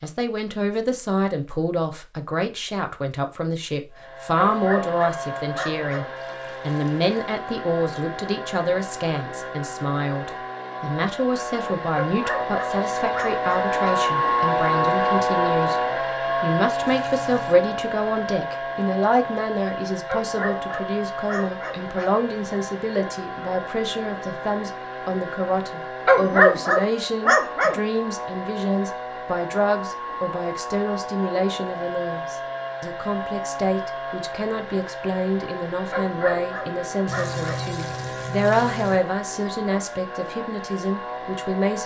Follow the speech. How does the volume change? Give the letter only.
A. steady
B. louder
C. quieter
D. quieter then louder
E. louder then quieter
A.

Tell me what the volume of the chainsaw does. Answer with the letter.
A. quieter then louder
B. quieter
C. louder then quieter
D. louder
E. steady
C.